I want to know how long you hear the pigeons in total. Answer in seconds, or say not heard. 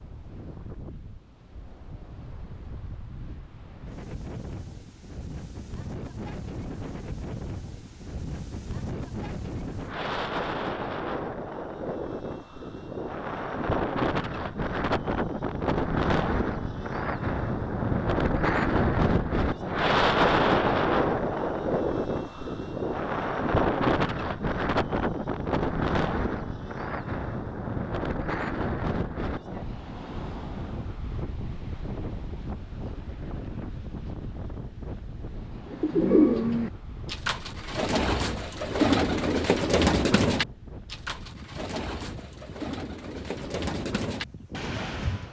10 s.